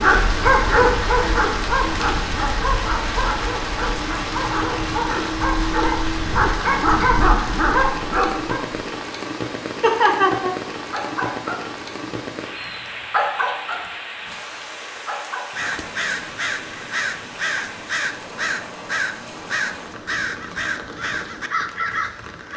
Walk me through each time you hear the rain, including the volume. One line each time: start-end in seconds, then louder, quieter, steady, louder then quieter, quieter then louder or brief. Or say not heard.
0.0-22.5 quieter.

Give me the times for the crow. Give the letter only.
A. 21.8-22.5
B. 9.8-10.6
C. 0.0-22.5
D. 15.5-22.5
D.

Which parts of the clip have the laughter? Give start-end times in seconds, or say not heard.
9.8-10.6.